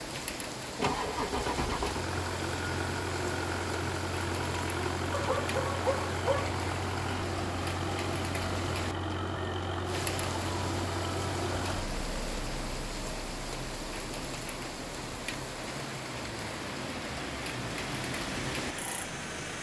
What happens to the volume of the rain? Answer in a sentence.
The volume of the rain stays about the same.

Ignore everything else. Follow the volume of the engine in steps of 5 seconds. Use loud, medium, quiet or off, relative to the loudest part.
loud, loud, loud, medium.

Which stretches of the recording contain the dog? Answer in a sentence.
The dog can be heard from 5.1 to 6.5 s.